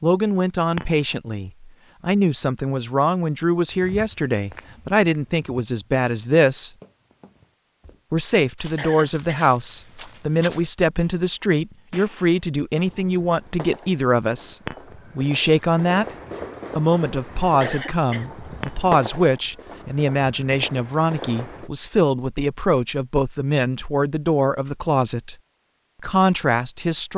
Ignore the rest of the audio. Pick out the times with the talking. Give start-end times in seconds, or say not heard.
0.0-6.7, 8.1-16.1, 16.8-25.4, 26.0-27.1.